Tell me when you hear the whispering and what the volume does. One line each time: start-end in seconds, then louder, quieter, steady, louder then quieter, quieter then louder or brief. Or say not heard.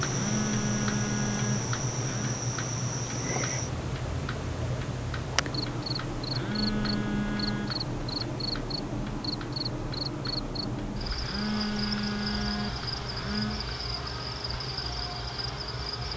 not heard.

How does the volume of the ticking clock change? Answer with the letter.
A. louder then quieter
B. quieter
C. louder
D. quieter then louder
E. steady
B.